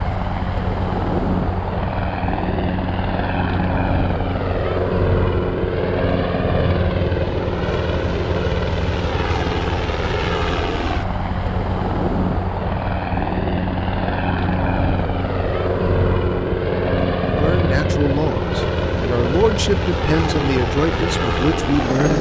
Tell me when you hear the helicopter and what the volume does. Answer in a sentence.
You can hear the helicopter from 0.0 to 22.1 s, at a steady volume.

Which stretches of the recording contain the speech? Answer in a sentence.
The speech can be heard from 17.2 to 22.1 s.